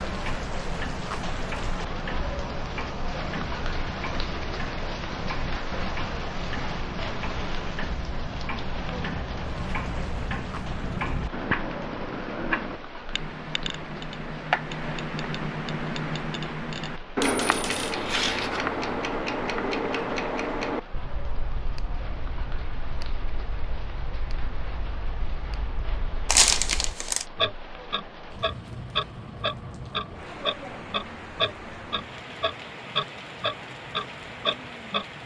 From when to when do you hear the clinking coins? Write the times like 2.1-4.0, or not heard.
17.2-18.8.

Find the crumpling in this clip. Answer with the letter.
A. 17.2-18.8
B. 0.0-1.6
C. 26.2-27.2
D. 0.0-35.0
C.